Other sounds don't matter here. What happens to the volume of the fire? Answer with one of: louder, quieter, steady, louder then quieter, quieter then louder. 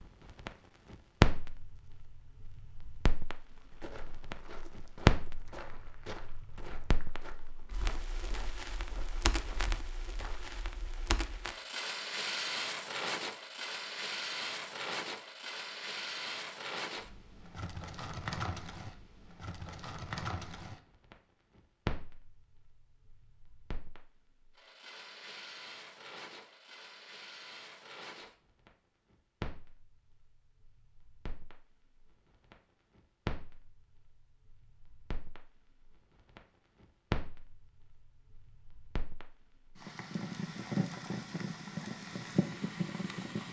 quieter then louder.